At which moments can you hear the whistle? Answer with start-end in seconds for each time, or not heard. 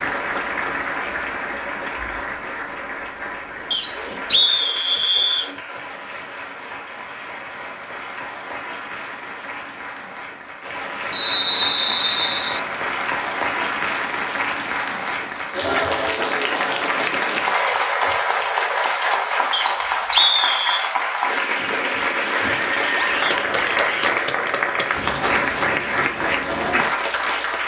3.7-5.5, 11.1-12.6, 19.5-20.9.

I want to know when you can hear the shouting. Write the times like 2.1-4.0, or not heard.
22.9-24.1.